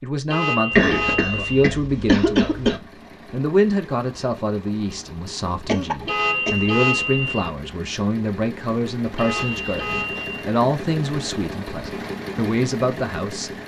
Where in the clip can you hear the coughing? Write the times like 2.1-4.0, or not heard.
0.7-2.8, 5.7-7.0, 9.3-10.3.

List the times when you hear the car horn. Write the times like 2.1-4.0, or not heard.
0.2-1.8, 6.0-7.5, 9.2-10.4.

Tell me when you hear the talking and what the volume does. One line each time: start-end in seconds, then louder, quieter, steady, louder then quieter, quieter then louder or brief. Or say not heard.
0.0-13.6 steady.